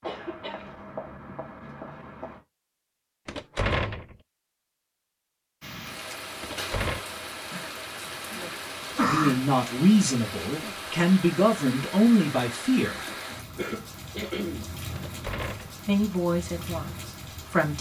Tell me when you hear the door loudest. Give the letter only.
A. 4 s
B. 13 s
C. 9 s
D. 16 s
A.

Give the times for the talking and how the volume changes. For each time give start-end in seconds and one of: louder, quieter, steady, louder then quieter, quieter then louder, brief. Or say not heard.
8.9-13.1 quieter then louder
15.8-17.7 brief.